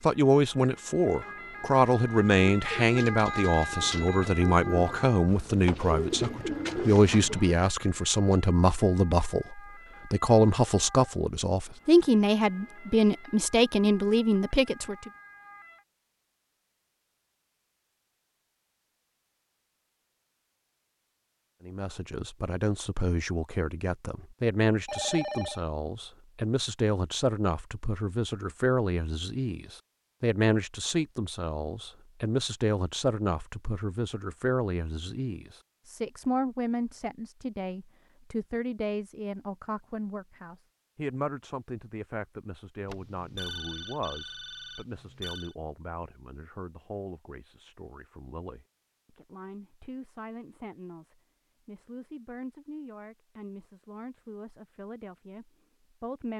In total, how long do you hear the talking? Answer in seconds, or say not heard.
50 s.